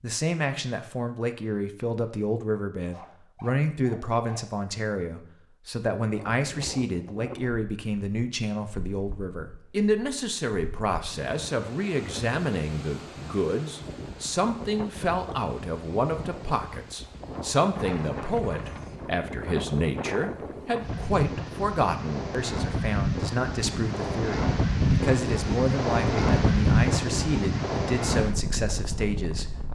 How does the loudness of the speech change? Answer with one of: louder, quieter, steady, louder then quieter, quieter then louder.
steady.